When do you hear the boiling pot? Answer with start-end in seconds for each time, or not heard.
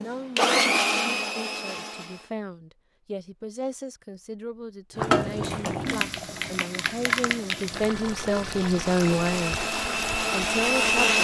5.0-11.1.